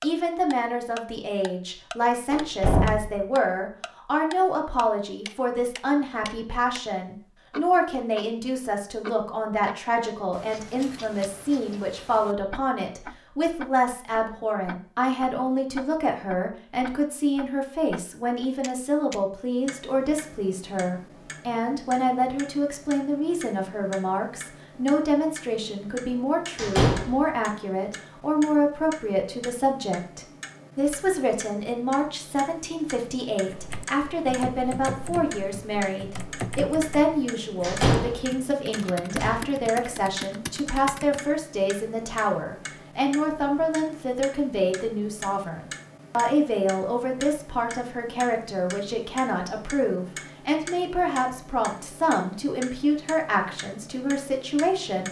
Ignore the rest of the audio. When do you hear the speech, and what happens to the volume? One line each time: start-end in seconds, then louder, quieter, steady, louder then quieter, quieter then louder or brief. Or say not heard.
0.0-55.0 steady.